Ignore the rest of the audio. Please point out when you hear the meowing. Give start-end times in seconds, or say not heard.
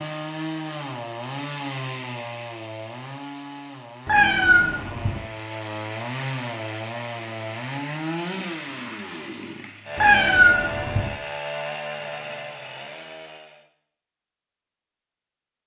4.0-5.2, 9.9-11.1.